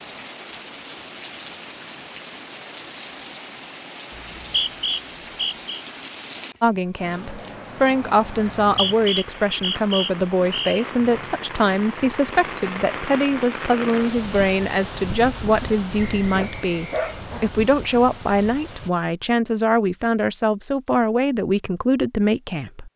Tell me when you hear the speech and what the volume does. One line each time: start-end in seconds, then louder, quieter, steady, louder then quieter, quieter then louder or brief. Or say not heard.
6.6-22.9 steady.